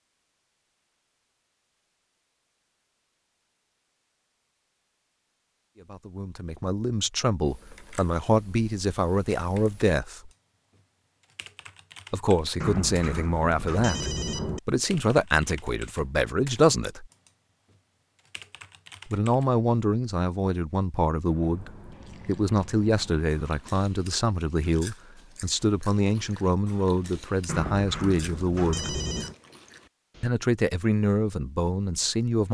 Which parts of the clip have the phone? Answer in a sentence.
You can hear the phone from 12.6 to 14.6 s and from 27.4 to 29.4 s.